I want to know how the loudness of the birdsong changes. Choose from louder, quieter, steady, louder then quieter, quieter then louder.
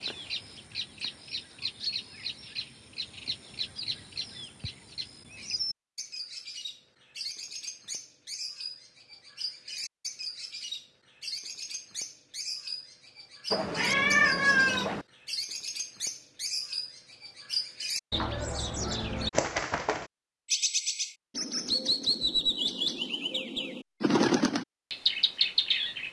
louder.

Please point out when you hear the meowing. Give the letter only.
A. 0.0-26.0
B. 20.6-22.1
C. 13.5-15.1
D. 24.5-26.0
C.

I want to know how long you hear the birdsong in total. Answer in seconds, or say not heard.
26 s.